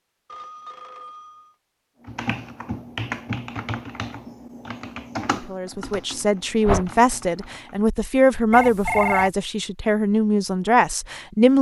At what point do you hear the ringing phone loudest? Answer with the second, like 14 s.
9 s.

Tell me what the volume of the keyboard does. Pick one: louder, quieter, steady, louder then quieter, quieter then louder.
quieter then louder.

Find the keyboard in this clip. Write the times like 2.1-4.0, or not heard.
2.0-7.8.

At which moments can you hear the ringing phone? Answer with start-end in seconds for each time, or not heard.
0.2-1.6, 8.5-9.3.